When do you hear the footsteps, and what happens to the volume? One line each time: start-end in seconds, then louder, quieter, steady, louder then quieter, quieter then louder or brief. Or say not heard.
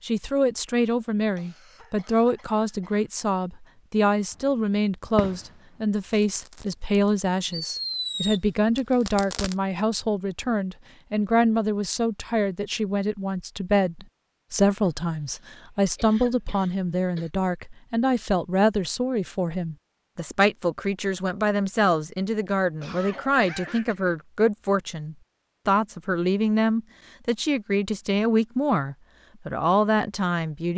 not heard.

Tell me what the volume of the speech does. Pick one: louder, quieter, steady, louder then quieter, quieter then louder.
steady.